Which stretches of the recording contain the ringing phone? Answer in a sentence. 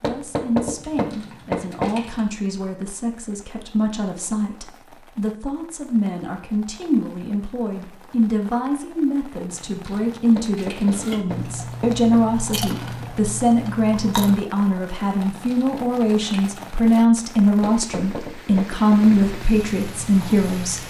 You can't hear the ringing phone here.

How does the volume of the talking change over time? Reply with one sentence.
The volume of the talking goes up.